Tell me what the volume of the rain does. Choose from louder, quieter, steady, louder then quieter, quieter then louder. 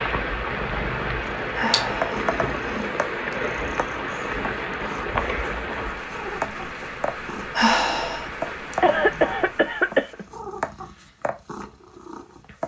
quieter.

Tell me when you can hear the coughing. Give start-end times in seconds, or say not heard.
8.8-10.2.